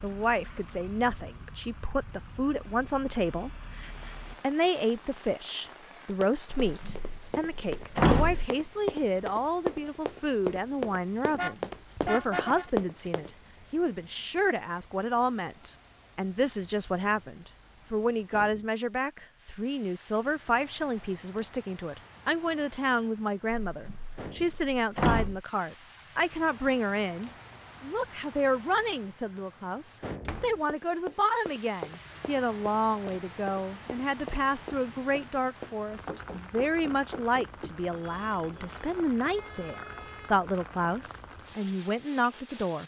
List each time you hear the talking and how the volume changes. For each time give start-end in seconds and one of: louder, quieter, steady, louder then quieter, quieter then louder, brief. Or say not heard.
0.0-42.8 steady.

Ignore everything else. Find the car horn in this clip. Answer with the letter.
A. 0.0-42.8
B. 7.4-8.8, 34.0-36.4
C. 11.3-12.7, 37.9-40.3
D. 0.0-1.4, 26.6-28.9
C.